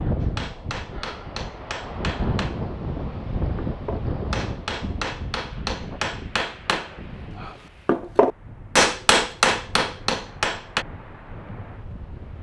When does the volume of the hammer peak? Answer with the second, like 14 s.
9 s.